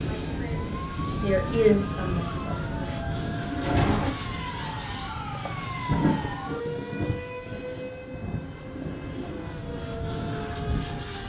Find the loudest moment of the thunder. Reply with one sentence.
The volume of the thunder peaks at 6 seconds.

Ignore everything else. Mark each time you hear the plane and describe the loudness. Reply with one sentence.
The plane can be heard from 0.0 to 11.2 s, getting quieter then louder.